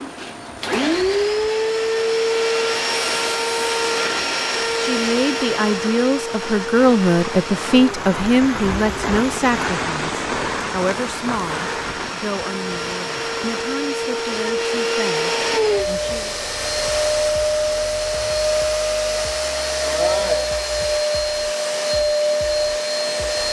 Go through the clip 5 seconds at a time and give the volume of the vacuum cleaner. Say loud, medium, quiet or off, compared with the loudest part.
loud, medium, medium, loud, loud.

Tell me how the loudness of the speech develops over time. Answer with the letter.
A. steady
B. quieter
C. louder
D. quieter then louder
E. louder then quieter
B.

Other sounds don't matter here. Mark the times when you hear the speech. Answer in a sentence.
The speech can be heard from 4.8 to 16.4 s.